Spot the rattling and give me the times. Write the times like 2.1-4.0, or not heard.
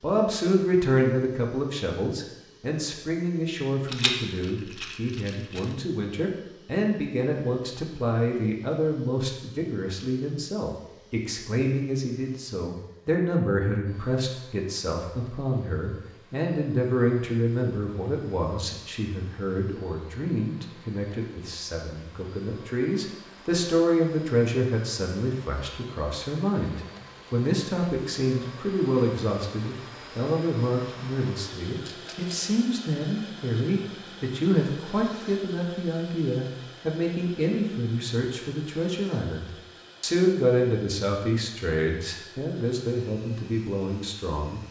3.9-5.7, 31.9-32.5.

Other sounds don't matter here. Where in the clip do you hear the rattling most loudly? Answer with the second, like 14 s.
4 s.